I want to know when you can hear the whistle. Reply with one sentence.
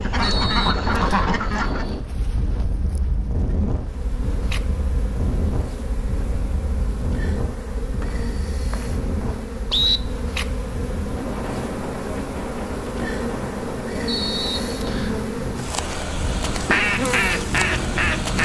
The whistle can be heard from 0.2 to 1.3 s, from 8.0 to 10.0 s and from 14.1 to 15.2 s.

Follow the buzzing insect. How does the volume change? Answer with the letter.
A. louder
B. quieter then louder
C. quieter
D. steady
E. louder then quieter
A.